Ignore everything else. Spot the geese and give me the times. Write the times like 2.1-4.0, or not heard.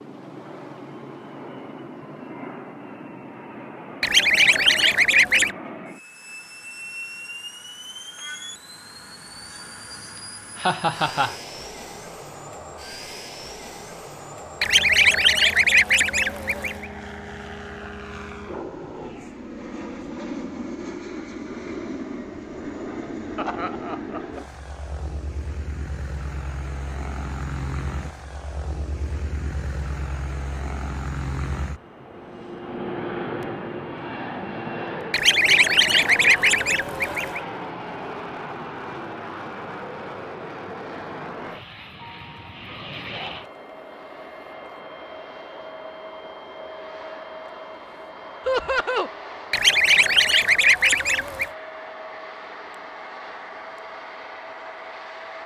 4.0-5.5, 14.6-16.9, 35.1-37.4, 49.5-51.5.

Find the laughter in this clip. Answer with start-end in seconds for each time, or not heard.
10.6-11.3, 23.4-24.4, 48.5-49.1.